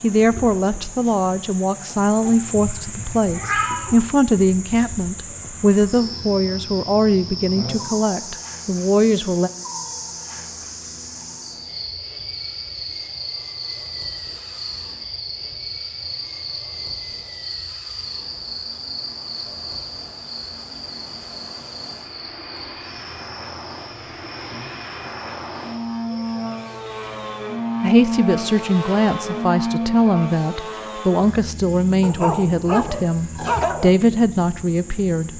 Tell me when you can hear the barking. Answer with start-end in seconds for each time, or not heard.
32.0-33.9.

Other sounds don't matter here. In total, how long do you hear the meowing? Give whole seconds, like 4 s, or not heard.
2 s.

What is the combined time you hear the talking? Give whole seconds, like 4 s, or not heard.
17 s.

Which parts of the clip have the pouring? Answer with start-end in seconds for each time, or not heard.
not heard.